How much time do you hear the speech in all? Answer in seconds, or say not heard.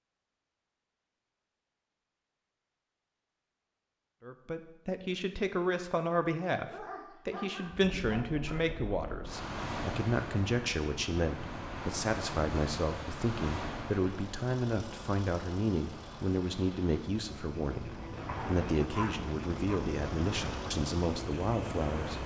18 s.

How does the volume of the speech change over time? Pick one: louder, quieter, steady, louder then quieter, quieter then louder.
steady.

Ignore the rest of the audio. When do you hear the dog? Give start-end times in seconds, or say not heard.
6.7-8.6, 18.2-19.8.